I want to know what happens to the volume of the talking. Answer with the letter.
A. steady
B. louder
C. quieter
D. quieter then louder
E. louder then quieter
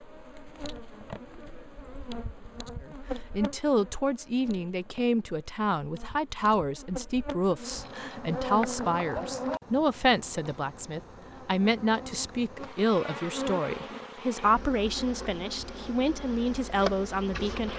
A.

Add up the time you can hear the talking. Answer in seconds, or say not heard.
15 s.